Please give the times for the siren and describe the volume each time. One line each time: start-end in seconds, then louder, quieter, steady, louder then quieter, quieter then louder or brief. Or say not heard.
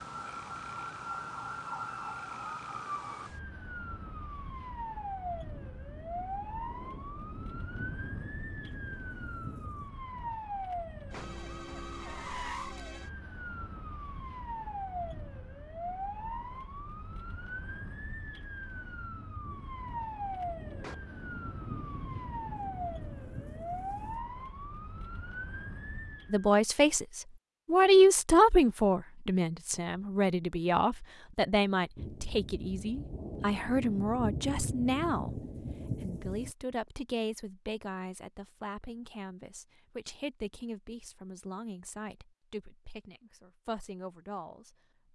0.0-26.5 steady.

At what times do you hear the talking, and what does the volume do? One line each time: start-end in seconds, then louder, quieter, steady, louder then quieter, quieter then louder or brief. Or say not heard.
26.3-45.1 quieter.